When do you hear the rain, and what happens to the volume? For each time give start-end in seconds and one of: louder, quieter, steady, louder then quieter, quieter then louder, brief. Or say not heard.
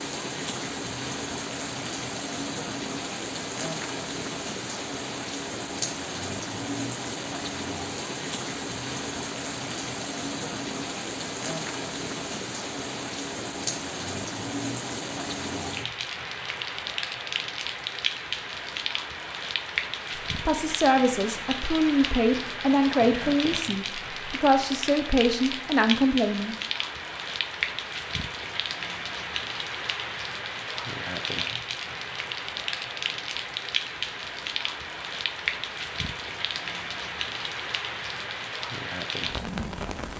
0.0-40.1 steady.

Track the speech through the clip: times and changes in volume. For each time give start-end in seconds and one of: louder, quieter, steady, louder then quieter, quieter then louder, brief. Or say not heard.
20.4-26.6 steady.